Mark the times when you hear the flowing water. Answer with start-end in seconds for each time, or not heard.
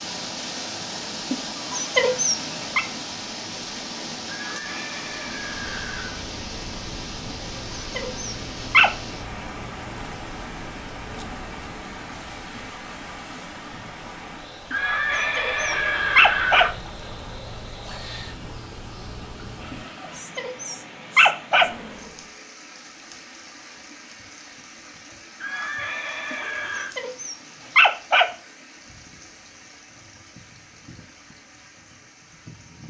0.0-32.8.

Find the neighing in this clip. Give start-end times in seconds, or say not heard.
4.2-6.2, 14.7-16.7, 25.4-26.9.